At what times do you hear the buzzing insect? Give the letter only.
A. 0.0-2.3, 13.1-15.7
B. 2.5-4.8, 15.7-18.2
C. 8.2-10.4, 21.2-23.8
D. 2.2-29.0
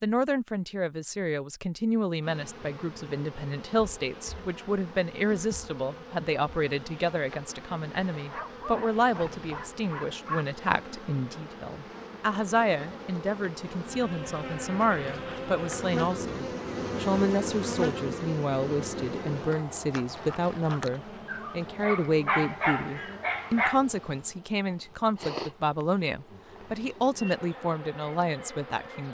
D.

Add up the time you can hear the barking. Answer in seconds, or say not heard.
5 s.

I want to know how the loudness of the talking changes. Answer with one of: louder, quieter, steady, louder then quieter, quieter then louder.
steady.